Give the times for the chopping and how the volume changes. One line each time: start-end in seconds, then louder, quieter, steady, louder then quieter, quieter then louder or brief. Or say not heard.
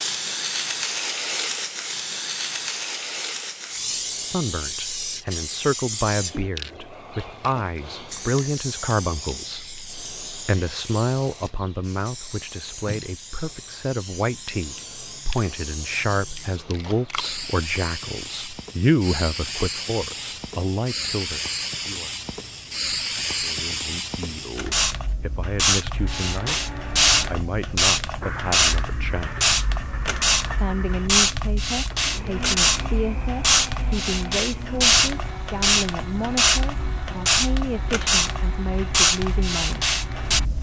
not heard.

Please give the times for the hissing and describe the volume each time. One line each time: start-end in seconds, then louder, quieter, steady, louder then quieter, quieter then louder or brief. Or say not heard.
0.0-40.5 quieter then louder.